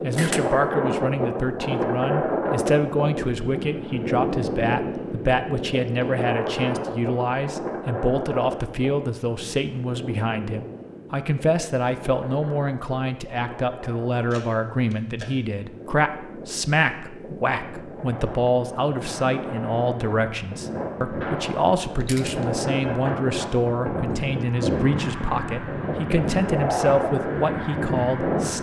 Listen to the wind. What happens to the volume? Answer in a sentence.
The volume of the wind goes down, then up.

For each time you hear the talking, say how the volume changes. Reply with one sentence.
The talking can be heard from 0.0 to 28.5 s, at a steady volume.